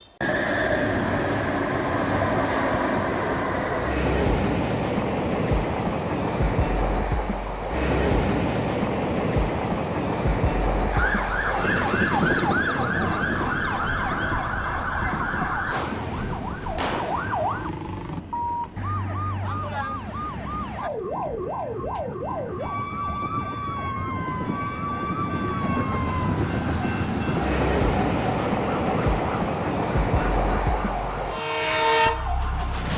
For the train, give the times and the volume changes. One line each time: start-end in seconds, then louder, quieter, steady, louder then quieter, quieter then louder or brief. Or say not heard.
0.2-32.9 quieter then louder.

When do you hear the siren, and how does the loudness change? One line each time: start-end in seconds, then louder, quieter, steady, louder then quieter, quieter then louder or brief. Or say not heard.
10.9-32.9 quieter.